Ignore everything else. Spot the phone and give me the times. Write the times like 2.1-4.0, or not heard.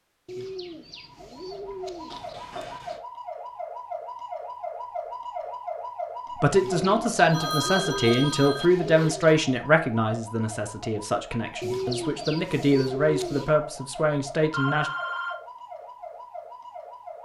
2.1-3.0, 7.2-8.7, 14.5-15.3.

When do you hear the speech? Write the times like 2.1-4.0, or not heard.
6.4-14.9.